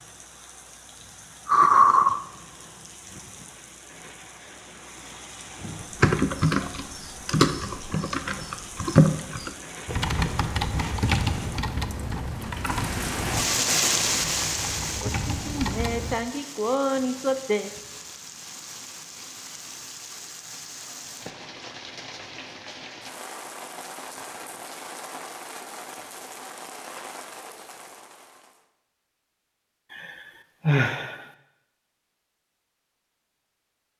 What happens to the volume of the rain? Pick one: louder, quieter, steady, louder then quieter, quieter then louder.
louder then quieter.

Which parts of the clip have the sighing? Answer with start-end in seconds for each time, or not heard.
1.4-2.2, 15.0-17.7, 29.9-31.2.